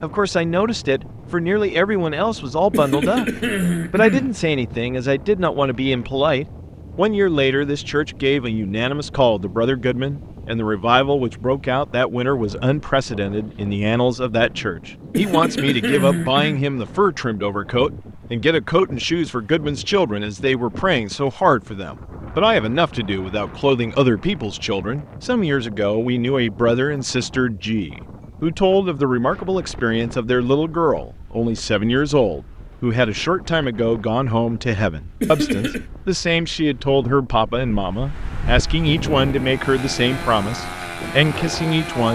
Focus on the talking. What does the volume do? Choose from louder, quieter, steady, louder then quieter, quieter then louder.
steady.